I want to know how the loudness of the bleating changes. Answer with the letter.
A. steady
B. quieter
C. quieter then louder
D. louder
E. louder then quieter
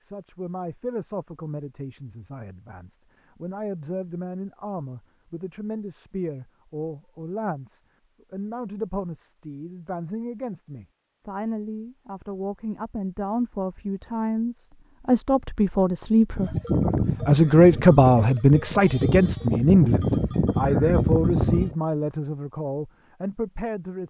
C.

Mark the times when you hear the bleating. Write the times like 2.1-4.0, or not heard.
16.4-21.8.